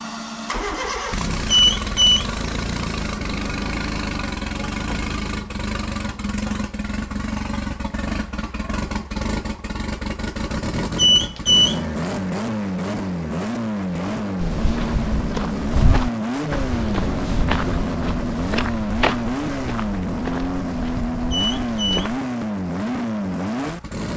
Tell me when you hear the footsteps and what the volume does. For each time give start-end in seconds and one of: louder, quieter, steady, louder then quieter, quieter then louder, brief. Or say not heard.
14.4-22.2 quieter.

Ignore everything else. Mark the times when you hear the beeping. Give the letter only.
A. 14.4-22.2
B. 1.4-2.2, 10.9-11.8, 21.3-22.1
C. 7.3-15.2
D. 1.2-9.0
B.